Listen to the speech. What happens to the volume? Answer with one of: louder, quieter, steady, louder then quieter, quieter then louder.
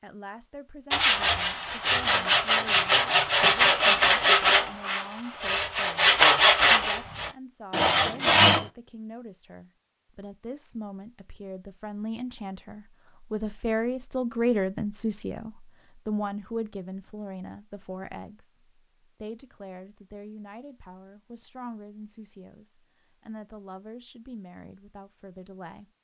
louder then quieter.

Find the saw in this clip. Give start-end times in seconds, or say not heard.
0.9-8.7.